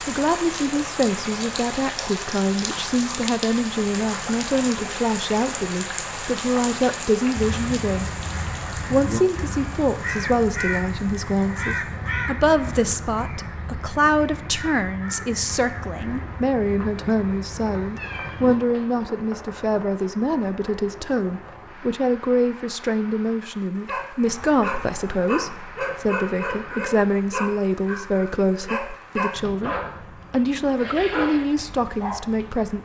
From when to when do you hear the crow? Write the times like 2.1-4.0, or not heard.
7.3-18.6.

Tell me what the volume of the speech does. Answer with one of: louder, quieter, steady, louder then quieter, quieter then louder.
steady.